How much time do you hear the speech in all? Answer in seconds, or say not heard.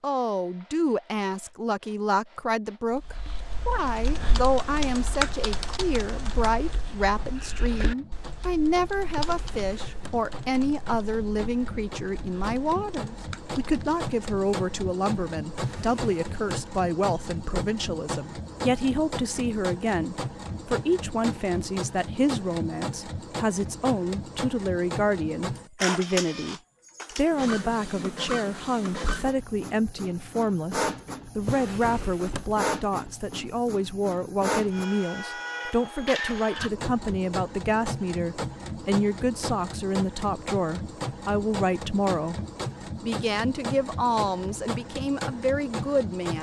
46 s.